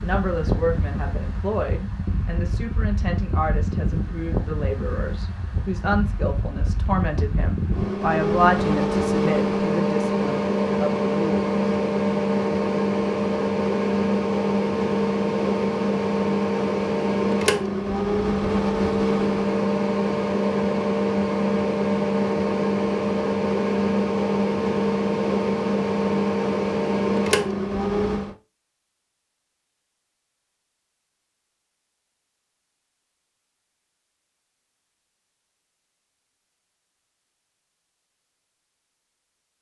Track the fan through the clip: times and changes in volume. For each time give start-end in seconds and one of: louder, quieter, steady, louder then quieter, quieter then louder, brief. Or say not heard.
0.0-28.4 louder.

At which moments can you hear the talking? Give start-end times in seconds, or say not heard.
0.0-11.5.